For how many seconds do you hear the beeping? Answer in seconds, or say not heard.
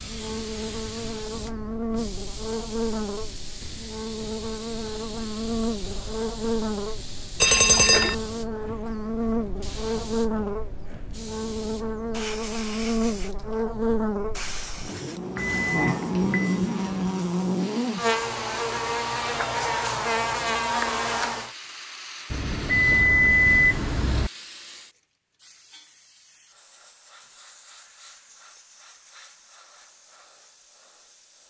4 s.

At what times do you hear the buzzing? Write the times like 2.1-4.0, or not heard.
0.0-21.5.